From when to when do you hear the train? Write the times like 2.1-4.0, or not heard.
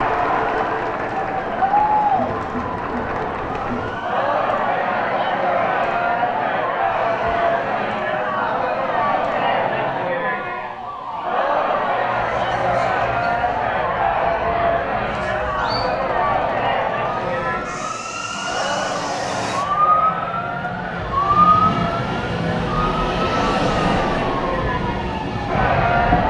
17.0-26.2.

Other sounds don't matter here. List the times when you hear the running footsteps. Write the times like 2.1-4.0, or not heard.
not heard.